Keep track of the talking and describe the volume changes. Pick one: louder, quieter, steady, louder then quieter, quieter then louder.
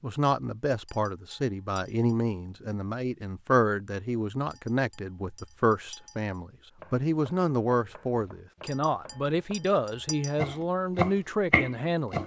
steady.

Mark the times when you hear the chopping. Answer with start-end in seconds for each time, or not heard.
6.8-12.2.